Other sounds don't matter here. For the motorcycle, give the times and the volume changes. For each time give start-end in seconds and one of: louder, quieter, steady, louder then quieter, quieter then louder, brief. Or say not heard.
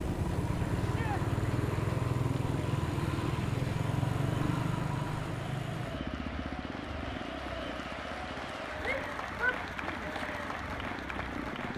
0.0-11.7 quieter.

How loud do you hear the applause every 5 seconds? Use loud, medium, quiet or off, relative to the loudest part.
medium, loud, loud.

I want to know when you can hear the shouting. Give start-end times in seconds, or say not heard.
0.8-1.2, 8.8-10.1.